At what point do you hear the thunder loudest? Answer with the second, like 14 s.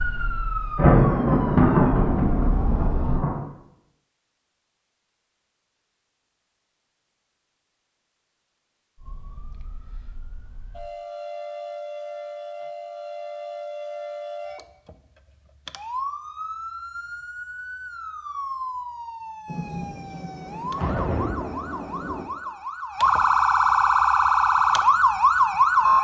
1 s.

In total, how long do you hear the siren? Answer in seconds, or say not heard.
20 s.